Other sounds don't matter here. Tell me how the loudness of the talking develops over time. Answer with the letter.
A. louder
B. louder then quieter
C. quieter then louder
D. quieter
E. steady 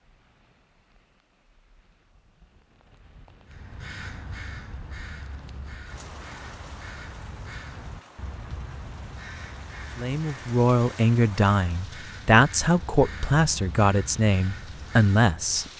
E.